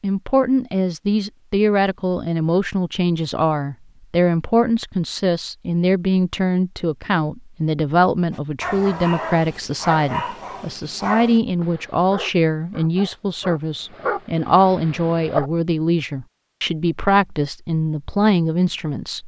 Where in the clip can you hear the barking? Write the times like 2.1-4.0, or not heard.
8.3-15.5.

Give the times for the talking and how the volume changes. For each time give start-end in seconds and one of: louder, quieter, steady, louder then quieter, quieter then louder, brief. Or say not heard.
0.0-19.2 steady.